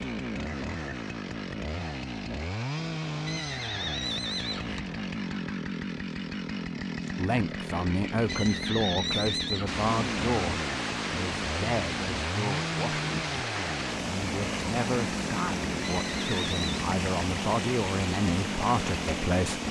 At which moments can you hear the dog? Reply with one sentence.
You can't hear the dog here.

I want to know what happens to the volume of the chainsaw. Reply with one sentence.
The volume of the chainsaw stays about the same.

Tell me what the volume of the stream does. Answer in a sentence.
The volume of the stream stays about the same.